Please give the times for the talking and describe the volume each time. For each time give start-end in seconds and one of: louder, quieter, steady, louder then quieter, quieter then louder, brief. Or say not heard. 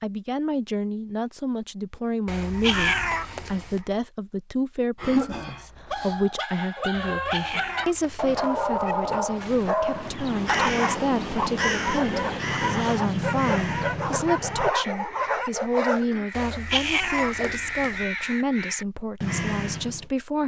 0.0-20.4 steady.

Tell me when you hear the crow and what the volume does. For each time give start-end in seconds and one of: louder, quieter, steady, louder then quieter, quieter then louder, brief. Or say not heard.
2.4-4.0 brief
9.8-20.1 quieter then louder.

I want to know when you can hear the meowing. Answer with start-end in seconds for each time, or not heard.
2.2-3.8, 6.9-8.9, 16.3-18.1.